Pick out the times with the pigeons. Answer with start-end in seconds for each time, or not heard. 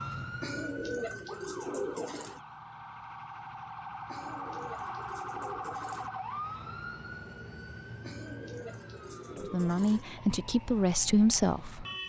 0.4-2.4, 4.0-6.1, 8.0-10.1.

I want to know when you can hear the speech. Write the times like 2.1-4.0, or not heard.
9.3-11.8.